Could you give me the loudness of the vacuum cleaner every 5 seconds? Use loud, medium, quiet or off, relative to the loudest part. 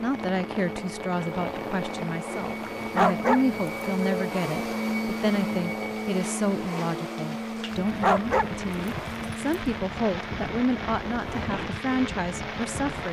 loud, loud, medium.